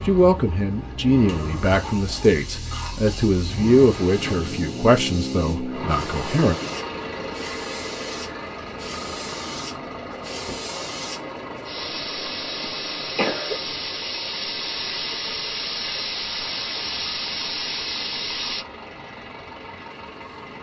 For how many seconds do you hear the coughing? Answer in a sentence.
The coughing can be heard for 3 seconds in total.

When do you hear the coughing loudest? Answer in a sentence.
The loudest moment of the coughing is at 13 seconds.